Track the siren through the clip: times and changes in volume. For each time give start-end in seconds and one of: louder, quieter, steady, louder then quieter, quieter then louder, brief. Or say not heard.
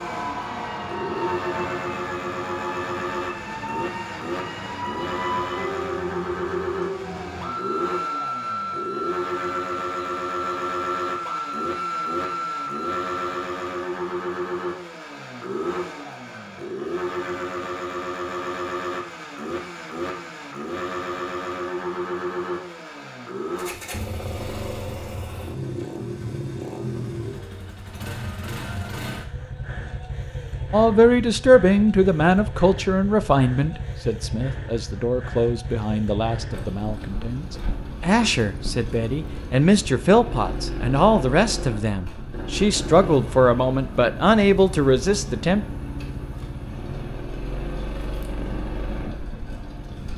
0.0-13.3 steady.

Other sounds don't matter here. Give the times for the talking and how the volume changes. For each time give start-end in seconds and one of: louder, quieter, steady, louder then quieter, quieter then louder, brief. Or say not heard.
30.7-45.6 quieter then louder.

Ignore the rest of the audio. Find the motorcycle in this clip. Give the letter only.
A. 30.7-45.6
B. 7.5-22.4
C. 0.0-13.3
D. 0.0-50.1
D.